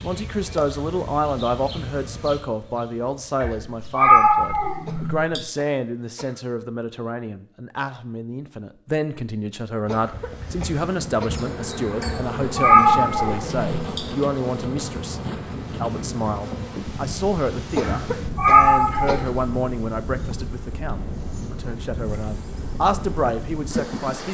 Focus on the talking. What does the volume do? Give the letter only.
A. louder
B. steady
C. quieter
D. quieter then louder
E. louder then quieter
B.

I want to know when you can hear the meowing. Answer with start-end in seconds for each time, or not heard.
3.4-5.4, 12.0-14.0, 17.8-19.2.